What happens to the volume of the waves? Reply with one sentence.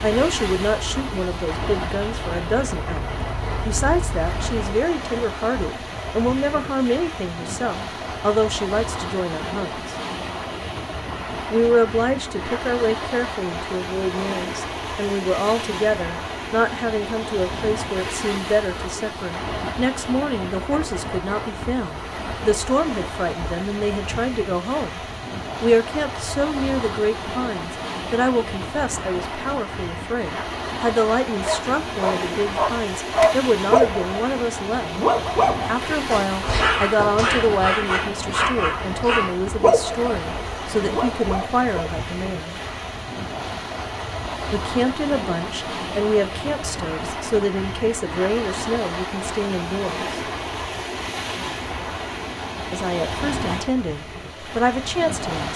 The loudness of the waves stays about the same.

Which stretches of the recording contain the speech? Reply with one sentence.
You can hear the speech from 0.0 to 9.9 s, from 11.5 to 25.0 s, from 25.6 to 34.9 s, from 35.6 to 42.6 s, from 44.5 to 50.1 s and from 52.7 to 55.5 s.